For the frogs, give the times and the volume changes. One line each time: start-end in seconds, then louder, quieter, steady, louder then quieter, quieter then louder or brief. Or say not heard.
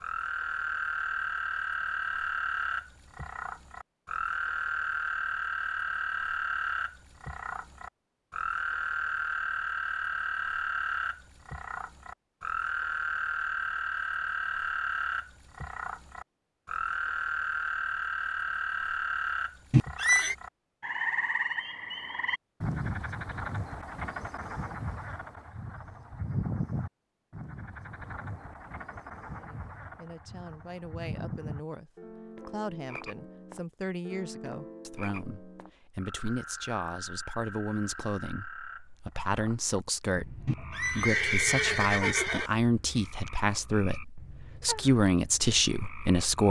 0.0-46.4 quieter.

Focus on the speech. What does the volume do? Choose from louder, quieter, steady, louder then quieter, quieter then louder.
louder.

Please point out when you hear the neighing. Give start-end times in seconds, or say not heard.
19.7-20.4, 40.5-42.5.